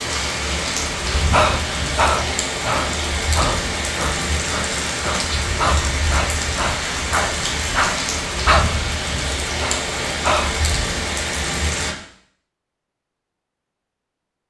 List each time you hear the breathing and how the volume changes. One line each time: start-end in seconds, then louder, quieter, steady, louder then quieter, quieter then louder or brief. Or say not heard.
1.1-8.7 quieter then louder
9.4-10.7 brief.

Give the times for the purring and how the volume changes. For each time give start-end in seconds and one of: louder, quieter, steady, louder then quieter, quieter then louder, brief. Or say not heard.
not heard.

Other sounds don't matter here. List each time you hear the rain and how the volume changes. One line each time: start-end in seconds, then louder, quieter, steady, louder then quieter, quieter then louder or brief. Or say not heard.
0.0-11.9 steady.